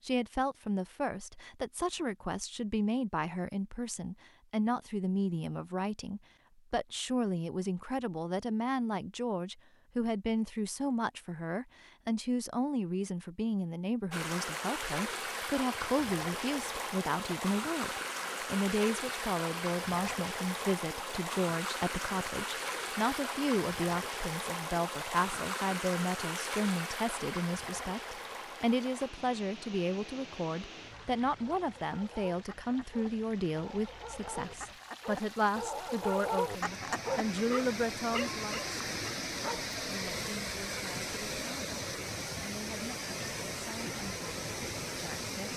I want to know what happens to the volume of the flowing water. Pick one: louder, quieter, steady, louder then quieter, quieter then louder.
quieter then louder.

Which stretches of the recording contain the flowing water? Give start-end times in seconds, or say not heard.
14.1-45.5.